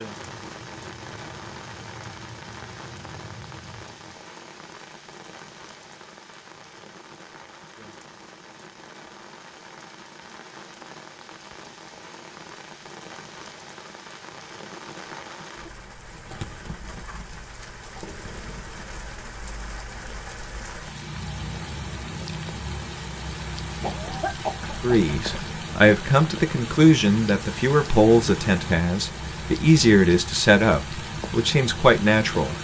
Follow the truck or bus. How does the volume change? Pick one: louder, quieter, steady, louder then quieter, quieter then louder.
steady.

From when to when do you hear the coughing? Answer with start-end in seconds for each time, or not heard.
23.8-25.4.